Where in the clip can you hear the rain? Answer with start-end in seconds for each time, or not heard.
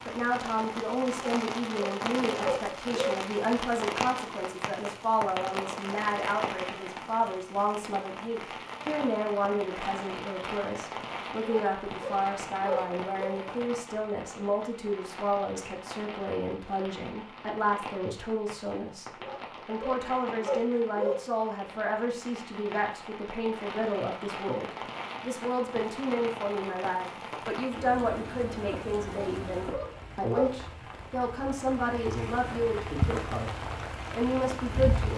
0.0-35.1.